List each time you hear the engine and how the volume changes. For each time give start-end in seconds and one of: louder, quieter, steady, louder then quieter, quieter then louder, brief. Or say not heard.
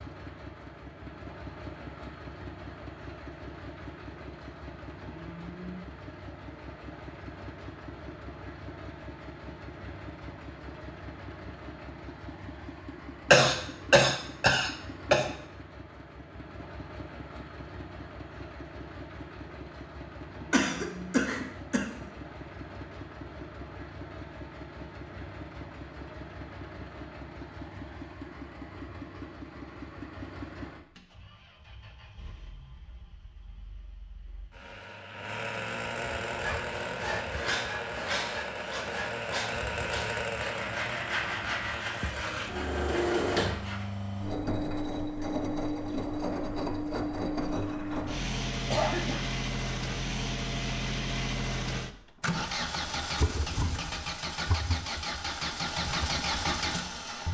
0.0-57.2 louder.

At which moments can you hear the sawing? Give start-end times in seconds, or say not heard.
36.2-43.9.